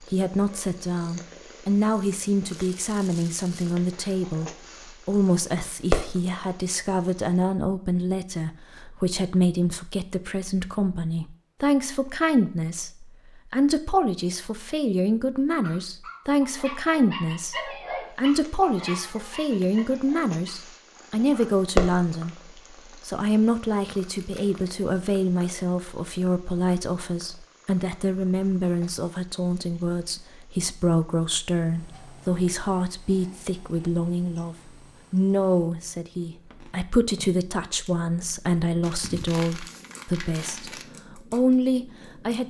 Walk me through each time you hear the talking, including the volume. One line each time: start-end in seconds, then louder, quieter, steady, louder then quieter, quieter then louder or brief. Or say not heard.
0.0-22.4 steady
23.1-42.4 steady.